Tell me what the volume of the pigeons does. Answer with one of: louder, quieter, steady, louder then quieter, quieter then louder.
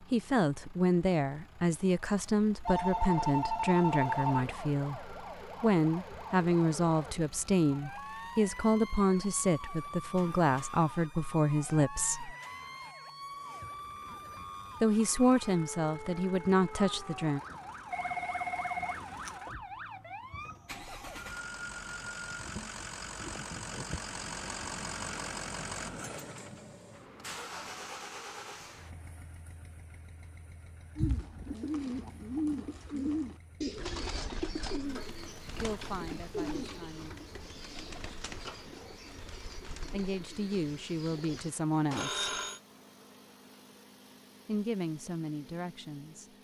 quieter.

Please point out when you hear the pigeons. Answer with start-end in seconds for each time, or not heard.
30.9-42.1.